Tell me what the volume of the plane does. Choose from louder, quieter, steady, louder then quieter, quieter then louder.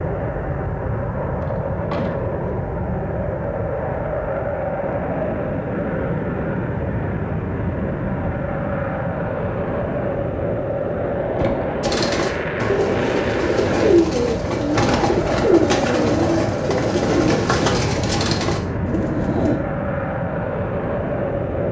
steady.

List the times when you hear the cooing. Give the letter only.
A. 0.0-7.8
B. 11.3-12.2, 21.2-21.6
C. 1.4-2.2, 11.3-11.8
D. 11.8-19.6
D.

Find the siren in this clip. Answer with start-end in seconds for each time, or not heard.
not heard.